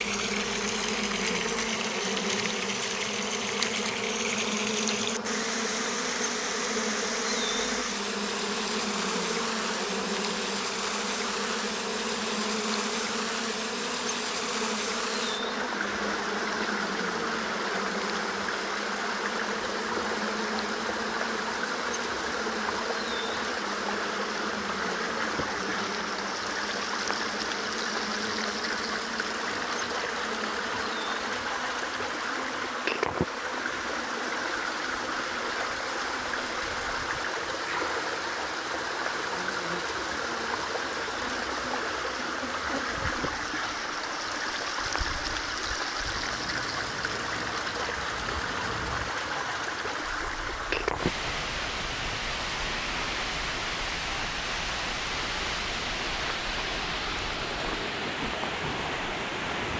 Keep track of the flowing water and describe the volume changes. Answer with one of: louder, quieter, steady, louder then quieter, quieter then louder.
steady.